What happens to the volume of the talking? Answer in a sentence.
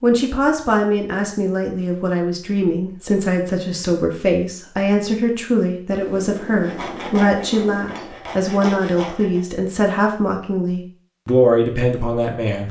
The volume of the talking stays about the same.